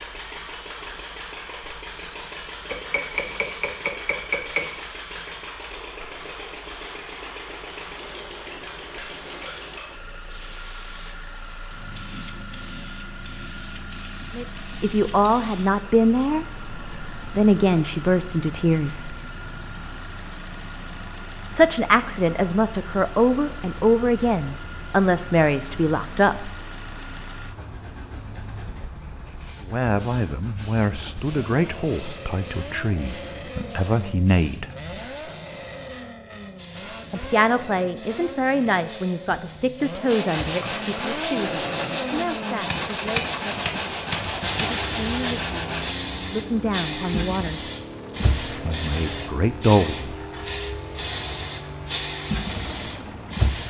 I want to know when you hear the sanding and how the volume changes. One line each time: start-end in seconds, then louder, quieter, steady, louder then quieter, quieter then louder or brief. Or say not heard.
40.0-46.0 steady.